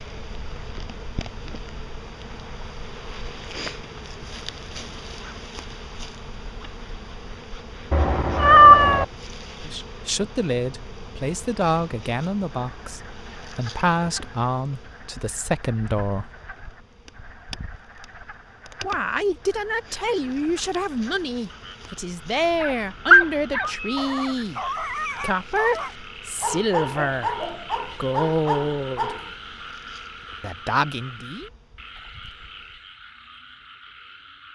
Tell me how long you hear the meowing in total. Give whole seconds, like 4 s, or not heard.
2 s.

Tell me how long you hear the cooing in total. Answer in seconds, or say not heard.
not heard.